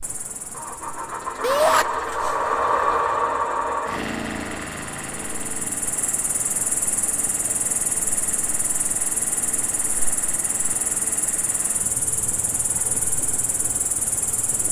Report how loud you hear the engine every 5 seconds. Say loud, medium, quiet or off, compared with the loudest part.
loud, quiet, quiet.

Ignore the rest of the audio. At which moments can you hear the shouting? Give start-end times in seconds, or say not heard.
1.4-1.9.